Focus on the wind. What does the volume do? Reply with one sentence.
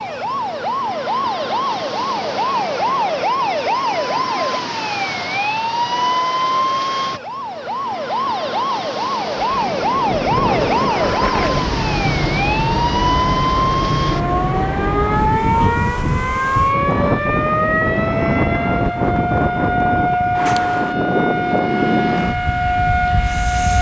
The volume of the wind stays about the same.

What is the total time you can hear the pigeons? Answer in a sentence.
The pigeons can't be heard in this clip.